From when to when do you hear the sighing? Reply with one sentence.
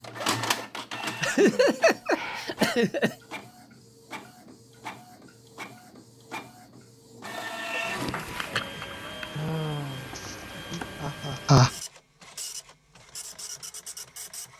The sighing can be heard from 1.3 to 2.5 s and from 9.3 to 10.2 s.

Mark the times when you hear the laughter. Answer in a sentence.
You can hear the laughter from 1.2 to 3.1 s and from 10.2 to 11.7 s.